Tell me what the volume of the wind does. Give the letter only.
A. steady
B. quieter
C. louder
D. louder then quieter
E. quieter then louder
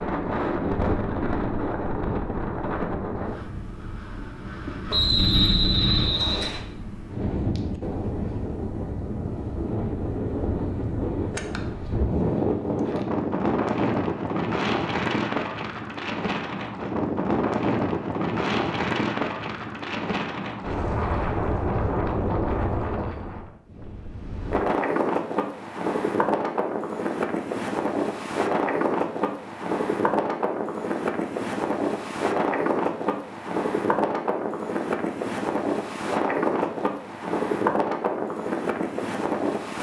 A.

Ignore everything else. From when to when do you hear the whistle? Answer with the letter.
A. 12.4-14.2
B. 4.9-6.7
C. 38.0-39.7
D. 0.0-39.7
B.